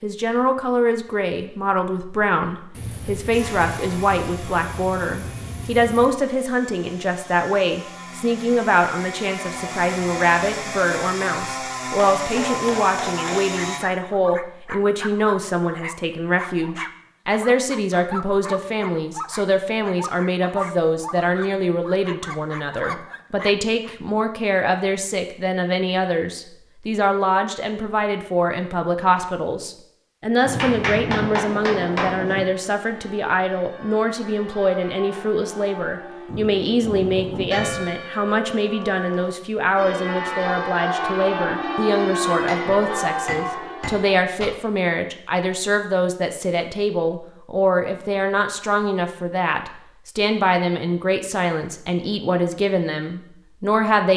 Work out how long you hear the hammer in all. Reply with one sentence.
The hammer can be heard for 5 seconds in total.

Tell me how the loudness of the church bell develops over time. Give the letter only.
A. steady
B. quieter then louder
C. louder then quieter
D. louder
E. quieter
D.